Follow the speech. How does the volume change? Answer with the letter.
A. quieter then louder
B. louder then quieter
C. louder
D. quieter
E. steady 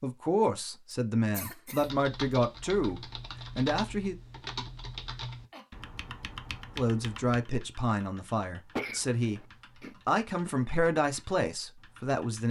E.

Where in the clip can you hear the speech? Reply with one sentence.
The speech can be heard from 0.0 to 4.2 s and from 6.8 to 12.4 s.